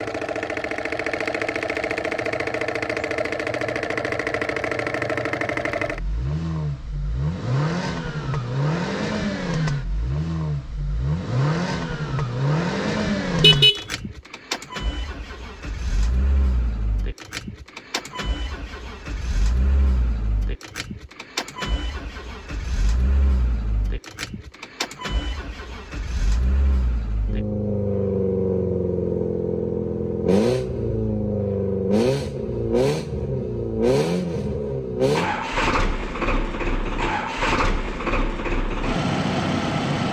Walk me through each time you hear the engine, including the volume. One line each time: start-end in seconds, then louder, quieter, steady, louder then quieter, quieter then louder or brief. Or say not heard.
0.0-40.0 quieter then louder.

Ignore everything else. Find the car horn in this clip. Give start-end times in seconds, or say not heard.
13.3-13.8.